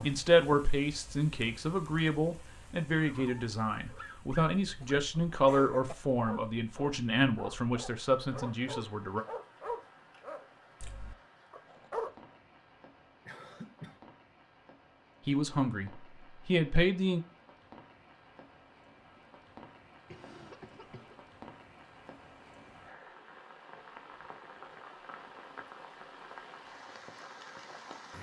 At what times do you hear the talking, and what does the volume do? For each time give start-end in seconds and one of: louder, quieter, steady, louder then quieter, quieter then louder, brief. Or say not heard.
0.0-9.2 steady
15.2-17.2 brief.